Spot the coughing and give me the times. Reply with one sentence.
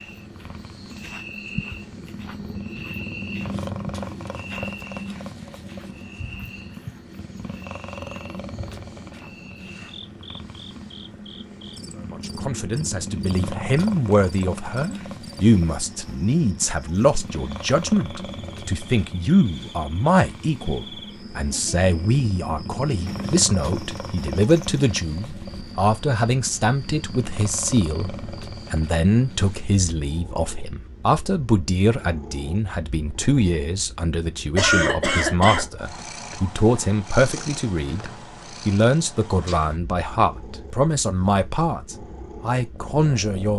You can hear the coughing from 34.5 to 35.6 s.